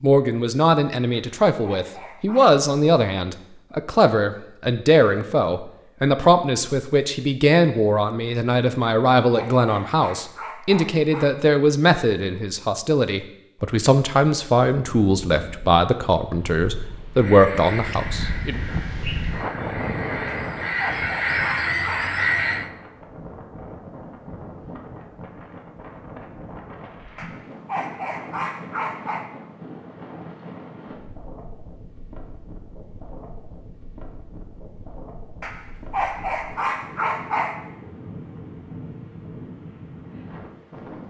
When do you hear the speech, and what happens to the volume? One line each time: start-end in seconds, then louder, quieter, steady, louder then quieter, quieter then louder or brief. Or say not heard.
0.0-18.6 steady.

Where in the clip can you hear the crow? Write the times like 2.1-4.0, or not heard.
17.1-22.7.